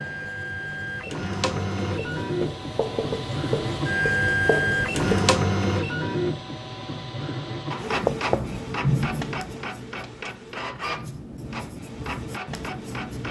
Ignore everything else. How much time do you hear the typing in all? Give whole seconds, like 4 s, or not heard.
not heard.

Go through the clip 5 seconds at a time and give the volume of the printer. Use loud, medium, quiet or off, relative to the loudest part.
loud, loud, medium.